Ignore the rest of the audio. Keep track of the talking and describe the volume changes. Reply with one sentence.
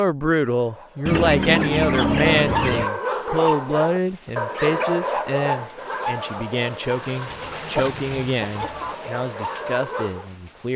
The volume of the talking goes down.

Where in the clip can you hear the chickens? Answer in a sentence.
The chickens can be heard from 1.1 to 2.9 s and from 7.2 to 8.9 s.